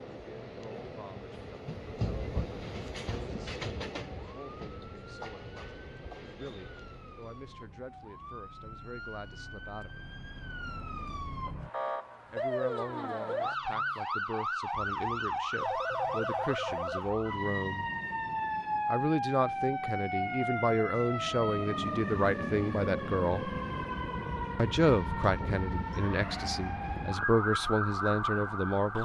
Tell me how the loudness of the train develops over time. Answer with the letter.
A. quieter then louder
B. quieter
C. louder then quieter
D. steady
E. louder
C.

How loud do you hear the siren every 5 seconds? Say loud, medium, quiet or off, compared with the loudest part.
quiet, quiet, loud, loud, loud, loud.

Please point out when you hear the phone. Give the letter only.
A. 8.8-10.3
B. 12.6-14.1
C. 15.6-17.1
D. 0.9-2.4
C.